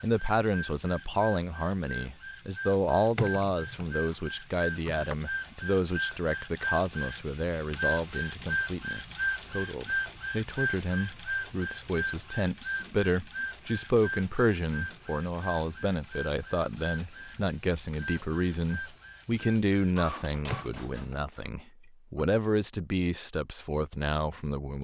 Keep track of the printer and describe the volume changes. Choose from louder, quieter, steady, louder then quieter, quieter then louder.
louder then quieter.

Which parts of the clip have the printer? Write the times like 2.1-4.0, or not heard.
0.0-21.4.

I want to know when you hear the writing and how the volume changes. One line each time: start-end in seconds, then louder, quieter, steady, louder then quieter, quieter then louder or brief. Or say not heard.
not heard.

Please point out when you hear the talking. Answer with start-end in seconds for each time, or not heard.
0.0-24.7.